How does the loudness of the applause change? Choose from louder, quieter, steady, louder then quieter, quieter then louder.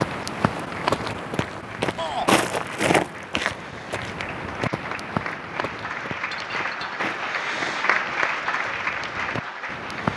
louder.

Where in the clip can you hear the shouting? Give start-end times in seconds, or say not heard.
1.9-2.4.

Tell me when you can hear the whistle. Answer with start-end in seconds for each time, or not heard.
not heard.